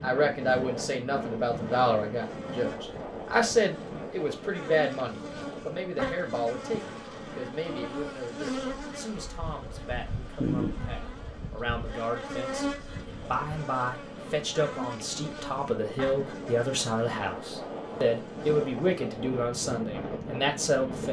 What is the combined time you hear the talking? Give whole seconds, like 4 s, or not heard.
21 s.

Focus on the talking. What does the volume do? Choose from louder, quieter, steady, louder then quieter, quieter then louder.
quieter then louder.